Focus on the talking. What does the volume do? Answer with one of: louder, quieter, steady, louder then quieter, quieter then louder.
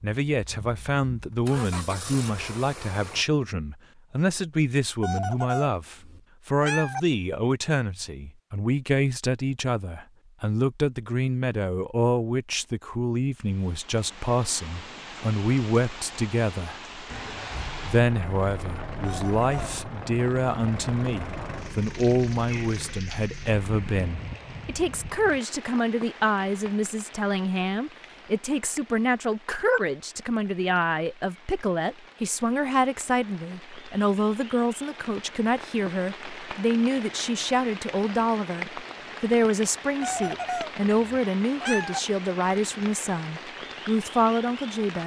steady.